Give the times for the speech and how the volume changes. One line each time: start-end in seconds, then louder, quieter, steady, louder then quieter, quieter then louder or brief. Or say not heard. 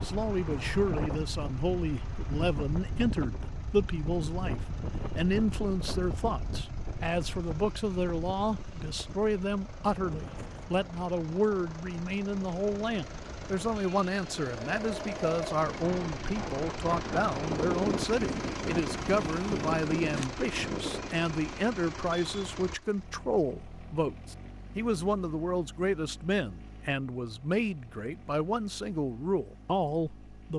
0.0-30.5 steady.